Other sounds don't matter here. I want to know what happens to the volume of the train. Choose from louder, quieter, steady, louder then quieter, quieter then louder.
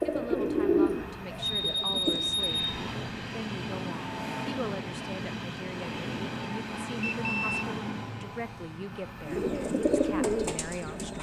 louder then quieter.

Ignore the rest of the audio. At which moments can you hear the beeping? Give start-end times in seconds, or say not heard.
1.4-2.8, 7.0-7.7.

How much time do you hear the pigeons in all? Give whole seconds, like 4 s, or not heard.
4 s.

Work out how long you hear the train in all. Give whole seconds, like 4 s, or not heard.
11 s.